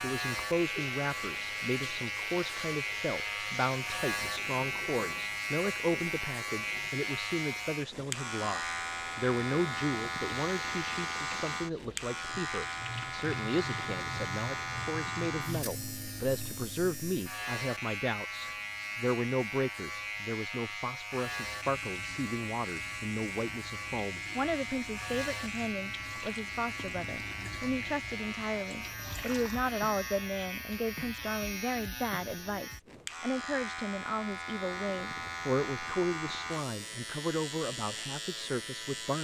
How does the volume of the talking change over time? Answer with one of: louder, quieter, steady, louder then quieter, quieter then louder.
steady.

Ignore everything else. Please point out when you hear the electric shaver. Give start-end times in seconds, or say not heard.
0.0-39.1.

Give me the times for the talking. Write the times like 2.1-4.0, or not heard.
0.0-39.1.